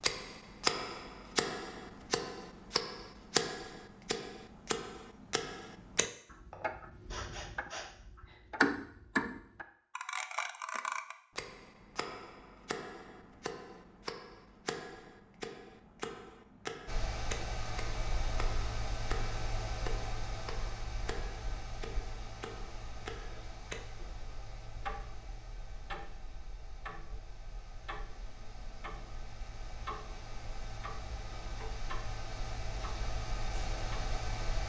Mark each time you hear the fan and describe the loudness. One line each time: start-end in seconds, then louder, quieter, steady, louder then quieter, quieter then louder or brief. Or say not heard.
16.9-34.6 quieter then louder.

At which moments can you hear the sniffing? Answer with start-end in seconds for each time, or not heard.
6.5-8.4.